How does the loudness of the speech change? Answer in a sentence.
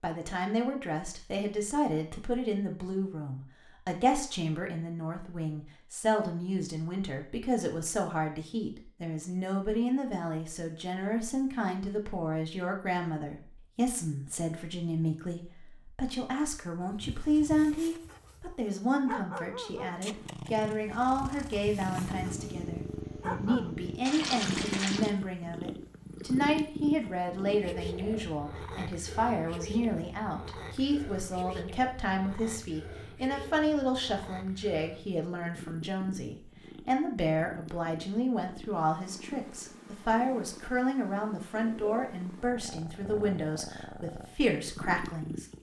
The loudness of the speech stays about the same.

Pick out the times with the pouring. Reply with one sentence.
You can hear the pouring from 24.1 to 25.1 s.